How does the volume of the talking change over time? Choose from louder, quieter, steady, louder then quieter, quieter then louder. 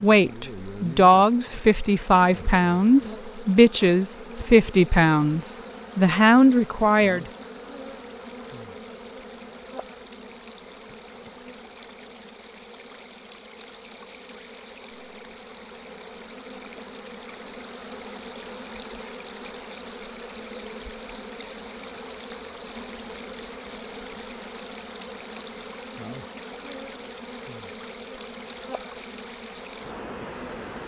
steady.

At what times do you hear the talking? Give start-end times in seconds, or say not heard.
0.0-7.2.